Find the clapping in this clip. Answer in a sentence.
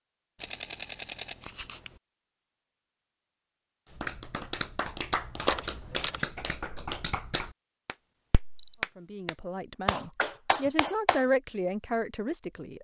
The clapping can be heard from 3.9 to 11.2 s.